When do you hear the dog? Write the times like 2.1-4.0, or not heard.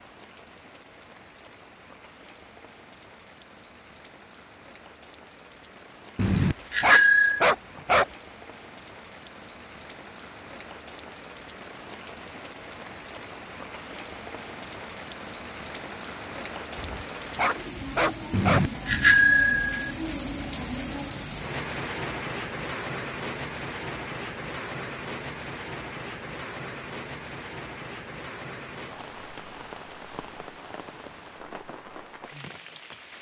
6.5-8.1, 16.8-18.6.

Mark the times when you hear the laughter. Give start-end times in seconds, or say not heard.
not heard.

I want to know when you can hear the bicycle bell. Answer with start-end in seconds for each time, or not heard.
6.2-7.5, 18.3-19.9.